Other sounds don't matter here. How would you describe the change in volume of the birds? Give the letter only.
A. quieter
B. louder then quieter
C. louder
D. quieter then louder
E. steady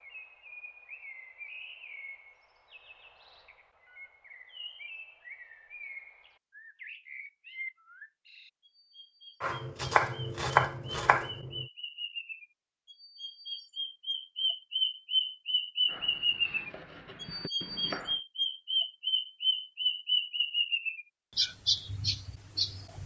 C.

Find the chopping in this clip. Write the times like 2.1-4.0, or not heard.
9.4-11.7, 15.8-18.2.